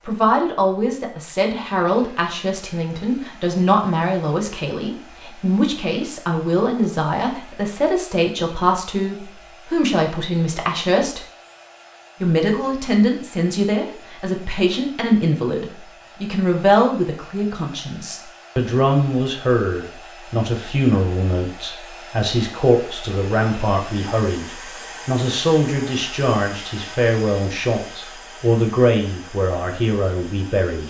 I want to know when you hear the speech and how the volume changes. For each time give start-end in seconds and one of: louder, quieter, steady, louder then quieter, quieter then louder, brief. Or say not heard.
0.0-11.2 steady
12.2-30.8 steady.